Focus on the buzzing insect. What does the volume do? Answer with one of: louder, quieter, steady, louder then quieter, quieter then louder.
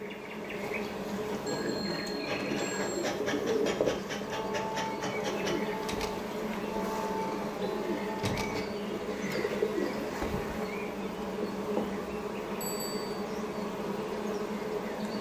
steady.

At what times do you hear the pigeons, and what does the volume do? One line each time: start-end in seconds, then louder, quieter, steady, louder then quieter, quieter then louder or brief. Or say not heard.
1.4-10.6 steady.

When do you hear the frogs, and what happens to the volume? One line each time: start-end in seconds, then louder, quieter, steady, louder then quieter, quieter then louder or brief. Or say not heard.
not heard.